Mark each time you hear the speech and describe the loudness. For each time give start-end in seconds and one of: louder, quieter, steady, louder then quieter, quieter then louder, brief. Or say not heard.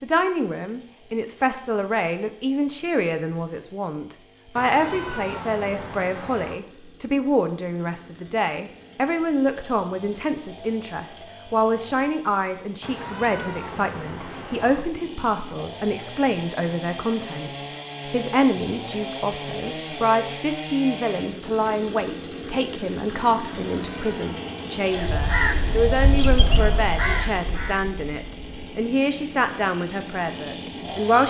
0.0-31.2 steady.